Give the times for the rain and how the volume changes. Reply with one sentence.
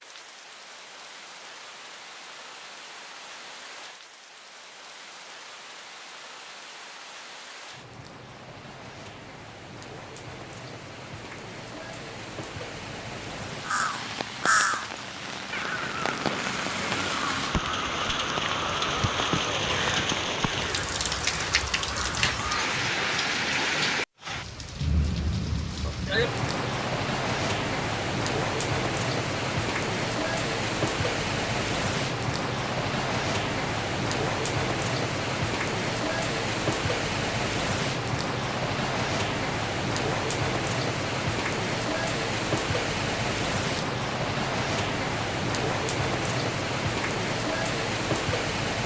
You can hear the rain from 0.0 to 48.8 s, getting louder.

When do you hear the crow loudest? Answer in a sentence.
The loudest moment of the crow is at 15 seconds.